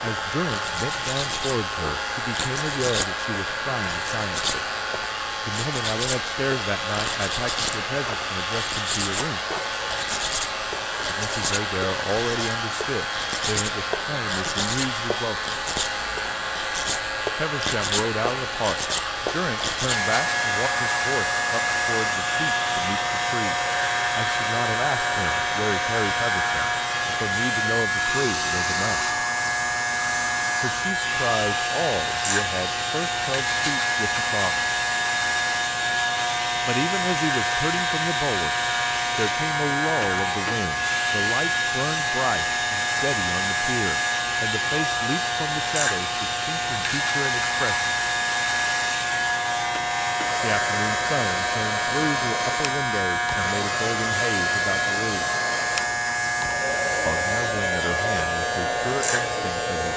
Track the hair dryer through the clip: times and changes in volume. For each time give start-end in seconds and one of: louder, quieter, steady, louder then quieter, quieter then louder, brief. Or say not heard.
0.0-59.9 steady.